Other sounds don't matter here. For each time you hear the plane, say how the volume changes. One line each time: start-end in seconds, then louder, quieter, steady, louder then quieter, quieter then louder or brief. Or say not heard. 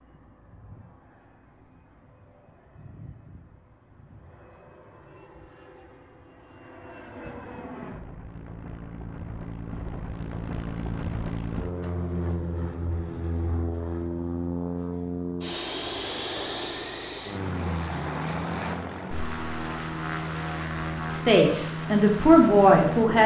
0.0-23.2 louder.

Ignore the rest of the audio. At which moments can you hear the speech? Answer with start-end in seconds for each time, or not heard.
21.2-23.2.